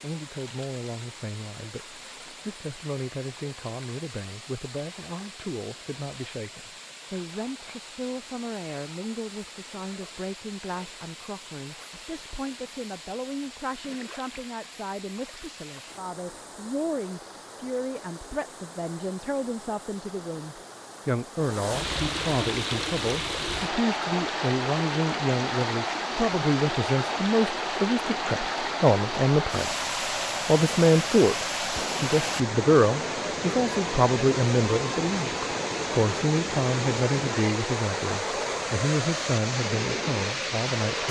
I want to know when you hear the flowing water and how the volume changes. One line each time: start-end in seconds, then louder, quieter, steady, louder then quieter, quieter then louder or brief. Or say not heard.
0.0-41.0 louder.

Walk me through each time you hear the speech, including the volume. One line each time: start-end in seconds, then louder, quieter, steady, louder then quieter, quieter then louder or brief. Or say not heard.
0.0-41.0 louder.